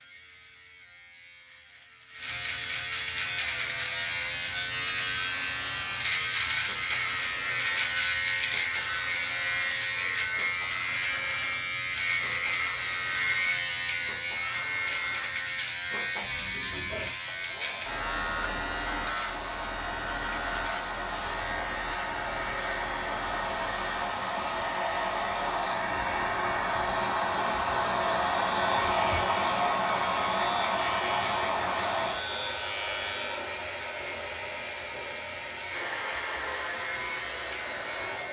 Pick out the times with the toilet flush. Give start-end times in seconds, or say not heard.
not heard.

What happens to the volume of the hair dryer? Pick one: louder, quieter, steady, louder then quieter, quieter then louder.
louder then quieter.